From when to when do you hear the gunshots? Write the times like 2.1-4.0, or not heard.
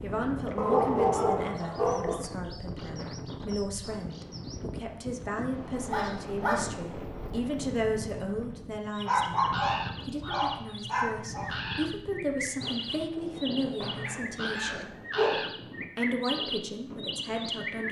12.4-14.2.